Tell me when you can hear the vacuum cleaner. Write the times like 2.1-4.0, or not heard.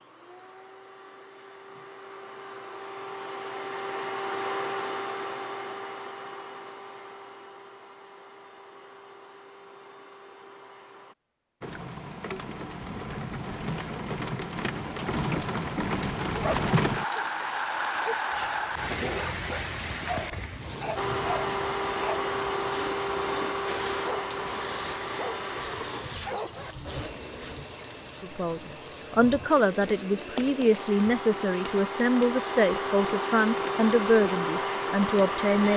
0.0-11.2, 20.9-35.7.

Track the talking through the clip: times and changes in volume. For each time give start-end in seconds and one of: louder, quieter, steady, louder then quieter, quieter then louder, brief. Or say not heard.
28.2-35.7 steady.